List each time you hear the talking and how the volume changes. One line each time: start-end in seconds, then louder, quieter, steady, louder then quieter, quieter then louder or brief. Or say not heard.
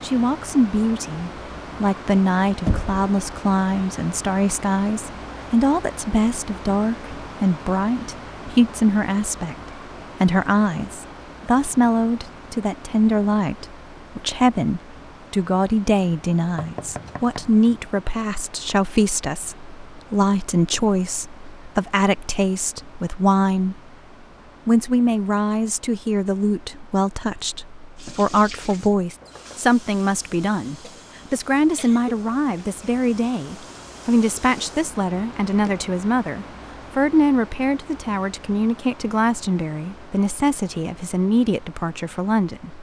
0.0-9.6 steady
10.2-23.8 steady
24.6-42.7 steady.